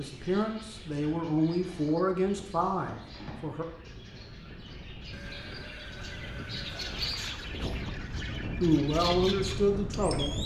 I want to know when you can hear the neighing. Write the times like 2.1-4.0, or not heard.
5.1-7.2.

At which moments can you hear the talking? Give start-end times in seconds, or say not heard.
0.0-3.6, 8.6-10.3.